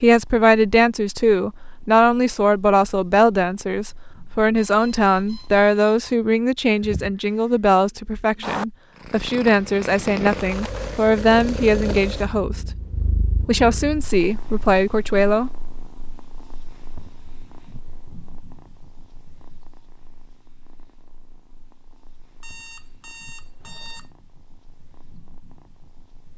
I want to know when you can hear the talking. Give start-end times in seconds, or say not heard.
0.0-12.7, 13.4-15.5.